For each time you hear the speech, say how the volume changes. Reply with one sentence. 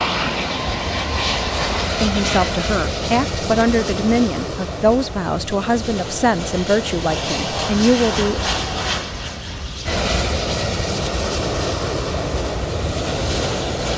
You can hear the speech from 2.0 to 8.4 s, at a steady volume.